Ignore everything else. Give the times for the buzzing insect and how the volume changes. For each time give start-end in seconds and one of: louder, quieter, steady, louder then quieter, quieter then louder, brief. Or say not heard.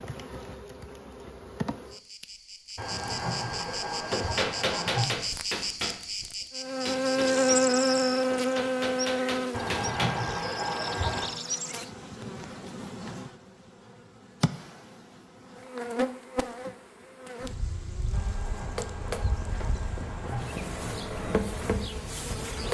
0.0-22.6 louder then quieter.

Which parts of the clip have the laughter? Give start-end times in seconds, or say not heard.
2.8-5.1, 9.5-11.3, 18.1-20.6.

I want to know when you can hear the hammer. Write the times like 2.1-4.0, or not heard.
3.9-10.2, 18.4-22.6.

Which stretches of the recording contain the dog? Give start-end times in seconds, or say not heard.
not heard.